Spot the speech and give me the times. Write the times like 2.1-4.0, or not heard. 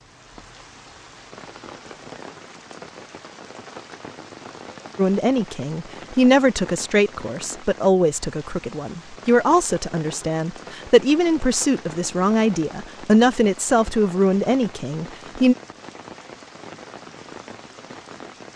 5.0-15.6.